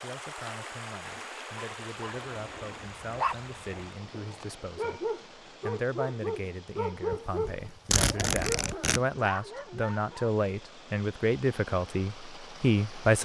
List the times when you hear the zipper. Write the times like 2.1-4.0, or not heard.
7.1-9.0.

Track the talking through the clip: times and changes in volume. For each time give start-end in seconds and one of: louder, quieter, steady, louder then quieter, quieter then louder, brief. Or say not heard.
0.0-13.2 louder.